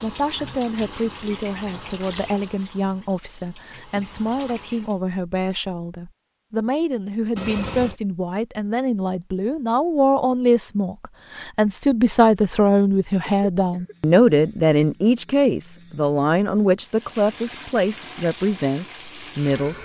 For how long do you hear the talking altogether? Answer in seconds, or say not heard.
20 s.